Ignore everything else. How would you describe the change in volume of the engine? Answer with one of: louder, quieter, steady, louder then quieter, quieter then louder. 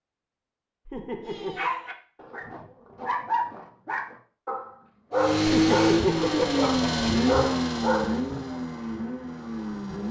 quieter.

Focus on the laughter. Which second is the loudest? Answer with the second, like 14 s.
6 s.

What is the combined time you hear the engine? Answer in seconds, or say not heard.
5 s.